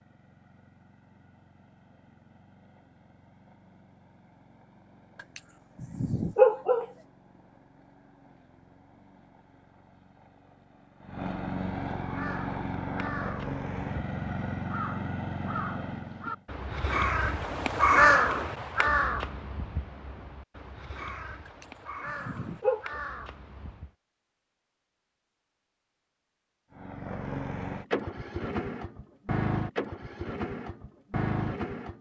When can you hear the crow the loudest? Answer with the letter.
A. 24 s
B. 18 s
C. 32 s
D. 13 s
B.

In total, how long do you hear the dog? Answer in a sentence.
You can hear the dog for 3 seconds altogether.